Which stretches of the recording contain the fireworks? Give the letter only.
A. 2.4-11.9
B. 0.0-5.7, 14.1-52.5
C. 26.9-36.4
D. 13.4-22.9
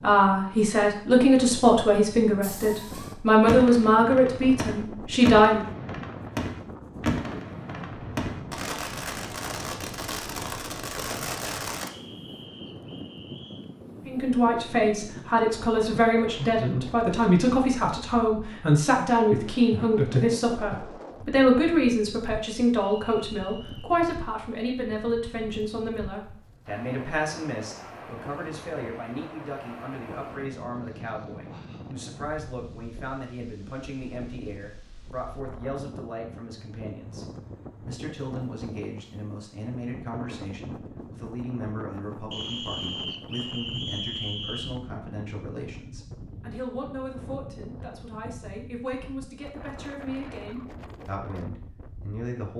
A.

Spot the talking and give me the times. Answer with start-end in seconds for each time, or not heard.
0.0-5.7, 14.1-52.5.